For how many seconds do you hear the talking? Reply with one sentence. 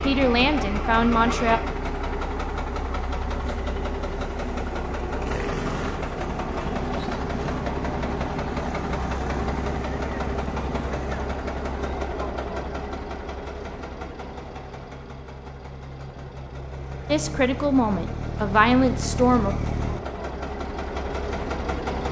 The talking can be heard for 4 seconds in total.